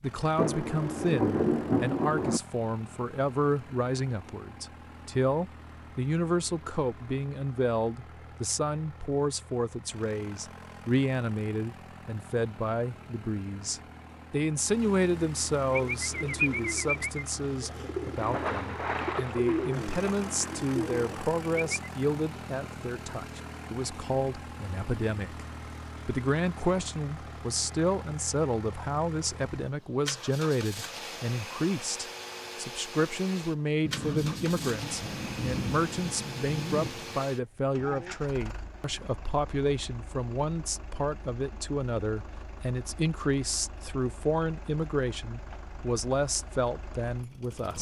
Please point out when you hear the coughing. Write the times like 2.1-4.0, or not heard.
not heard.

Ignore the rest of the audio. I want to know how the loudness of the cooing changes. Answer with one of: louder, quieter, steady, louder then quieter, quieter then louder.
quieter then louder.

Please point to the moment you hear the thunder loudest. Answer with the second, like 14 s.
1 s.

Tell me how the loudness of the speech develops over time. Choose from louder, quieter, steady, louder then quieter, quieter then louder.
steady.